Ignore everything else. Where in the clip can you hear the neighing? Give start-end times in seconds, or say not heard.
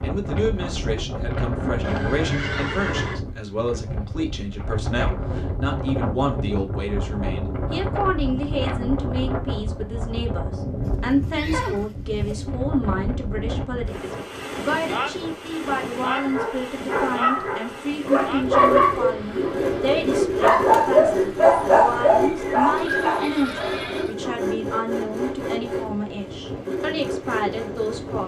1.8-3.2, 10.8-12.3, 22.8-24.1.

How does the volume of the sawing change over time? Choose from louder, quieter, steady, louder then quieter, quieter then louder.
quieter.